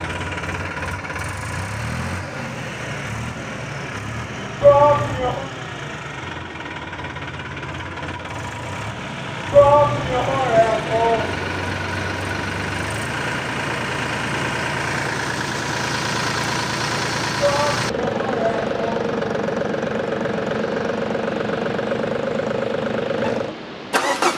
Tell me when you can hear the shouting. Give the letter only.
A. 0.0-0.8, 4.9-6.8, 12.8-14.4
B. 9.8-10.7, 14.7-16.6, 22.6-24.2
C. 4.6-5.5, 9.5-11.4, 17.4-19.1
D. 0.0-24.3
C.